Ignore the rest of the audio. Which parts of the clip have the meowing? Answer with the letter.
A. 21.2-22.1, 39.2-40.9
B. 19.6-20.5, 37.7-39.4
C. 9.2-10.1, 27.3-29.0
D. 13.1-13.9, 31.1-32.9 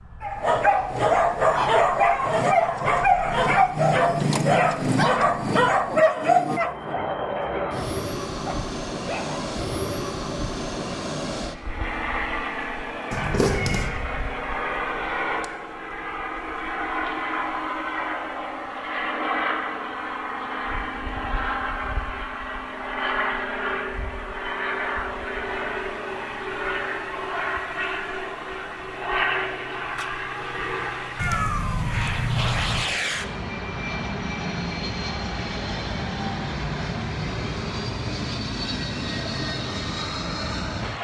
D.